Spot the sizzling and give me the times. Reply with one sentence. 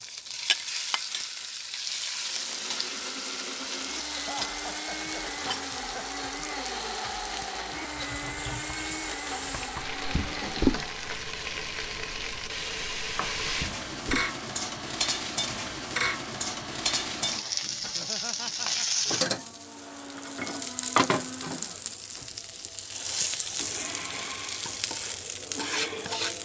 You can hear the sizzling from 0.0 to 26.4 s.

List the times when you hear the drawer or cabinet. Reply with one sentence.
You can hear the drawer or cabinet from 10.1 to 10.8 s and from 13.6 to 14.3 s.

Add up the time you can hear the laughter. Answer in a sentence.
You can hear the laughter for 3 seconds altogether.